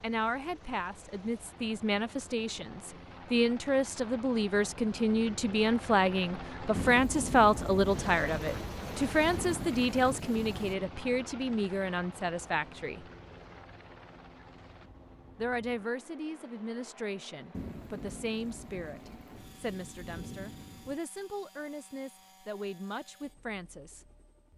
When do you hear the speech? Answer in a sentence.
You can hear the speech from 0.0 to 13.1 s and from 15.3 to 24.1 s.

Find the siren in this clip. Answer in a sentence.
The siren can't be heard in this clip.